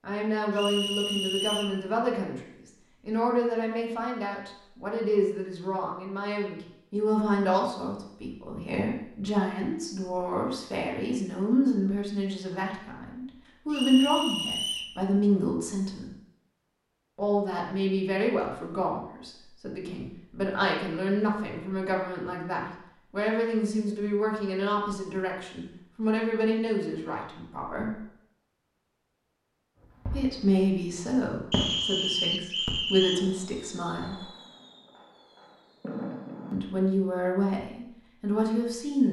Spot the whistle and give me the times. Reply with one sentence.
The whistle can be heard from 0.6 to 1.8 s, from 13.7 to 14.9 s and from 31.5 to 33.2 s.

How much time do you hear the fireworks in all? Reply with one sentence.
The fireworks can be heard for 6 seconds in total.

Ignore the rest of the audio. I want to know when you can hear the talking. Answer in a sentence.
The talking can be heard from 0.0 to 2.4 s, from 3.0 to 16.1 s, from 17.1 to 27.9 s, from 30.1 to 34.2 s and from 36.5 to 39.0 s.